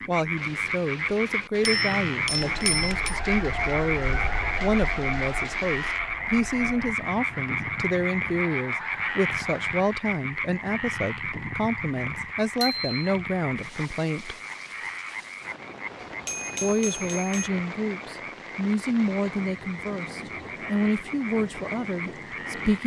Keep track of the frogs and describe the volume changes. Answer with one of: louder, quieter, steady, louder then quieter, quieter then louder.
quieter.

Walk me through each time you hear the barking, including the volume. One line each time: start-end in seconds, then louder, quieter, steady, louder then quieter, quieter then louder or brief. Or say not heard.
not heard.